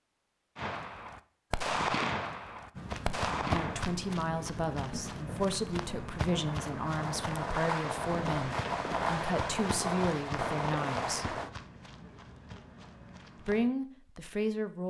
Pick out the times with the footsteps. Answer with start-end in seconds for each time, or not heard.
2.8-13.7.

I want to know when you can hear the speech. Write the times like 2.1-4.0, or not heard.
3.5-11.3, 13.4-14.8.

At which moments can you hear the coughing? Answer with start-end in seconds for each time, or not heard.
not heard.